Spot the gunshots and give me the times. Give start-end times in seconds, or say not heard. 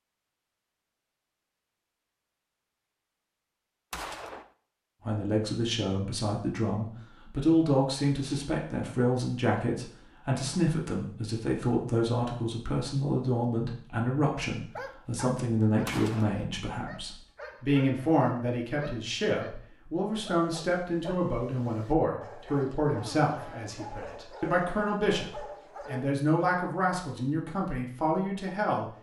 3.9-4.5, 15.8-16.4.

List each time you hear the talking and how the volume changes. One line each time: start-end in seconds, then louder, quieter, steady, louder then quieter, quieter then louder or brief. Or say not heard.
5.0-28.9 steady.